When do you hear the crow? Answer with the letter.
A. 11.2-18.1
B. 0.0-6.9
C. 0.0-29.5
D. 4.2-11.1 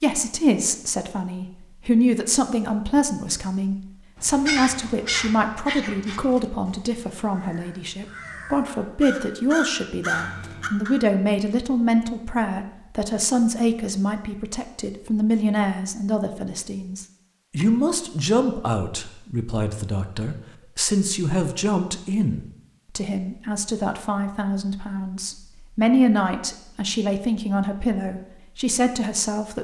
D.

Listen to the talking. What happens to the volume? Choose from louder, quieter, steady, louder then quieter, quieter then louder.
steady.